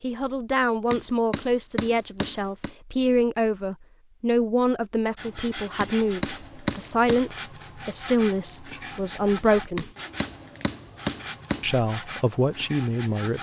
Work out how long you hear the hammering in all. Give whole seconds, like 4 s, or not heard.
5 s.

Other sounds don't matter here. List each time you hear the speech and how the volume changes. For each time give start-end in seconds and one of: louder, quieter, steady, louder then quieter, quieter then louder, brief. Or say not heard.
0.0-9.9 steady
11.6-13.3 brief.